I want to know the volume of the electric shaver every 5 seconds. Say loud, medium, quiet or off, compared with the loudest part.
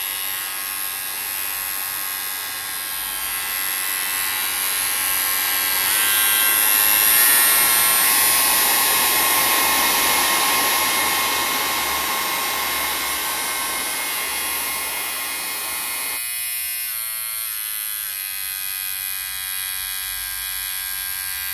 medium, loud, medium, medium, medium.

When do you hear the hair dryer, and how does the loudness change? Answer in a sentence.
You can hear the hair dryer from 0.0 to 16.2 s, getting louder then quieter.